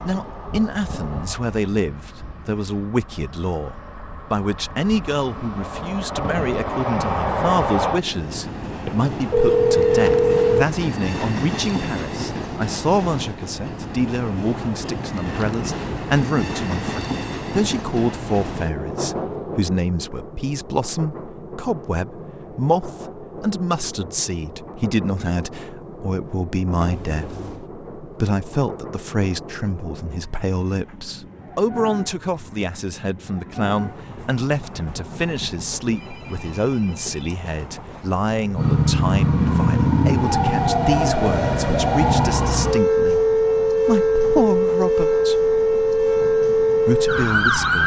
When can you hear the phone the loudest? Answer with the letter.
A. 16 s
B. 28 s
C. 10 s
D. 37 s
C.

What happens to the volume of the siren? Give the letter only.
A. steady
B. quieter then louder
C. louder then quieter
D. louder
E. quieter
A.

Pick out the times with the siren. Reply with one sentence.
You can hear the siren from 38.5 to 47.8 s.